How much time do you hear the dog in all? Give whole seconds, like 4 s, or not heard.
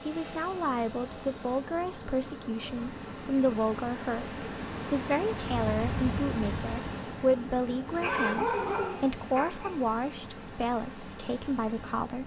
2 s.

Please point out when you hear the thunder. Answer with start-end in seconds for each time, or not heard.
5.5-6.8.